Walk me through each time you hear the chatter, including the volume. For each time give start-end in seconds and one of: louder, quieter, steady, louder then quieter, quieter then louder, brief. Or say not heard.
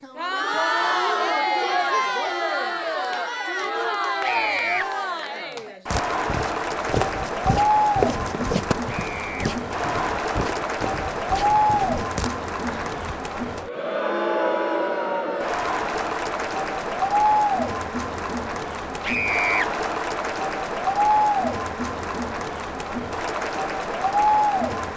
0.0-24.9 steady.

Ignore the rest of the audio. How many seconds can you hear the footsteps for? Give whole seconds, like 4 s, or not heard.
7 s.